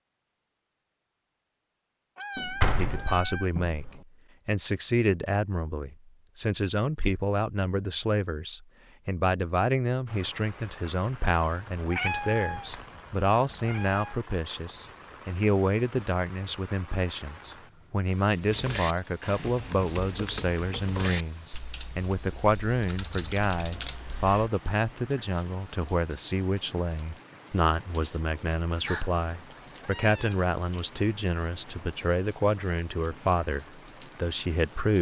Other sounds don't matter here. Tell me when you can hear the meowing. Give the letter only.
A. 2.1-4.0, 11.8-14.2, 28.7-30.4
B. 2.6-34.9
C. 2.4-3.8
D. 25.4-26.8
A.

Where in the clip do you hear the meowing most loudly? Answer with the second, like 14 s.
12 s.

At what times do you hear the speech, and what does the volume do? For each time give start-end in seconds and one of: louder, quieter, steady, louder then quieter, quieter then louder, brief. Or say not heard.
2.6-34.9 steady.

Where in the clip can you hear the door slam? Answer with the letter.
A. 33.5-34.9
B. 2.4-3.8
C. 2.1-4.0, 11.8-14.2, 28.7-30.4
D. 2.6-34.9
B.